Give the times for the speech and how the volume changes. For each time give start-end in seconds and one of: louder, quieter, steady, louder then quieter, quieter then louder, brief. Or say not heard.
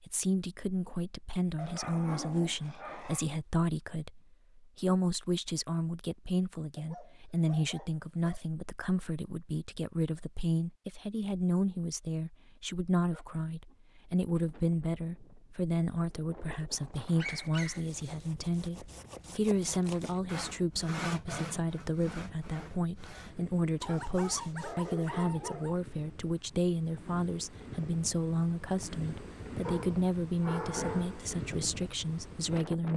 0.0-32.9 steady.